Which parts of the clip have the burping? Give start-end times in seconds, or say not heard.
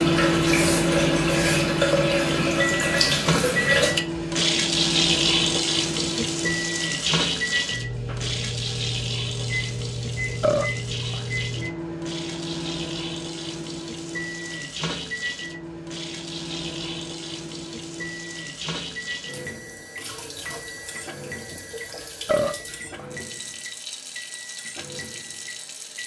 10.4-11.2, 22.2-23.1.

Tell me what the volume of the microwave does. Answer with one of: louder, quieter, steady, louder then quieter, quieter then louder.
quieter.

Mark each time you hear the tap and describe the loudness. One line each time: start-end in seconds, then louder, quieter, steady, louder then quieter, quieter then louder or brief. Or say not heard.
0.0-26.0 quieter.